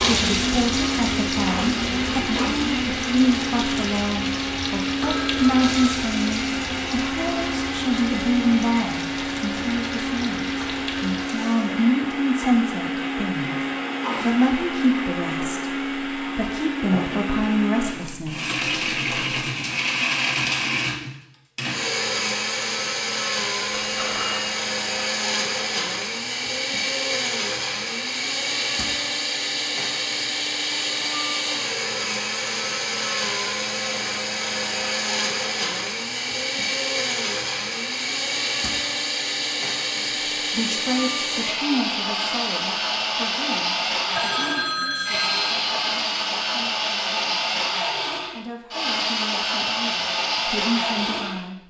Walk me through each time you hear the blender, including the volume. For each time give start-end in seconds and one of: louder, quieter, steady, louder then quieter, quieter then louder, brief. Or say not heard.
0.0-51.6 steady.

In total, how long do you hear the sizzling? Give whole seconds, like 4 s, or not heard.
12 s.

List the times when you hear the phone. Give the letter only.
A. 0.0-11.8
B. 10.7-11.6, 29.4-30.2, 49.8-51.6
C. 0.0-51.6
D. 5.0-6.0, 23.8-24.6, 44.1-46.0
D.